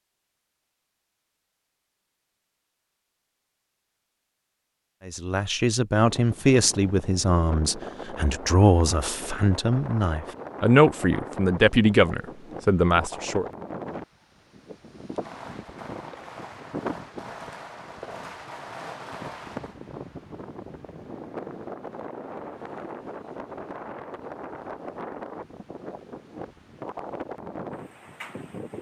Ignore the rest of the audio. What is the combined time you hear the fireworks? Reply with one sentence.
The fireworks can be heard for 5 seconds in total.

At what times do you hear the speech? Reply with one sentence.
The speech can be heard from 5.0 to 13.5 s.